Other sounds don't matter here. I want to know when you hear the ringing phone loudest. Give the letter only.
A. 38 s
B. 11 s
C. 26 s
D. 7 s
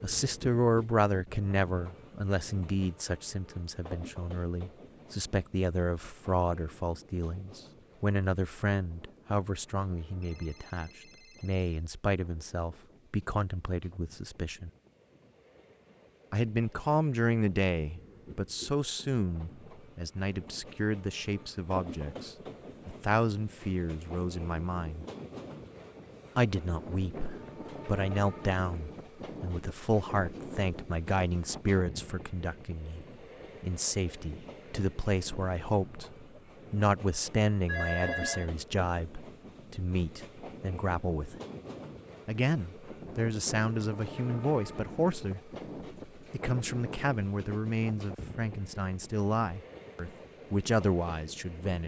A.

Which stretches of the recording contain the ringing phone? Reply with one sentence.
The ringing phone can be heard from 10.2 to 11.8 s and from 37.6 to 38.5 s.